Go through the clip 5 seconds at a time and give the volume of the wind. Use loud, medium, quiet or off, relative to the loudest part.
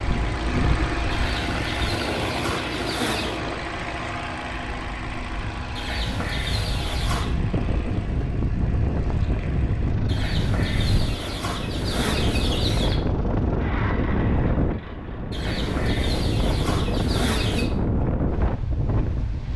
medium, loud, loud, loud.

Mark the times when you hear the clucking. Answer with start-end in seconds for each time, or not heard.
1.1-3.4, 5.8-7.3, 10.1-13.0, 15.3-17.7.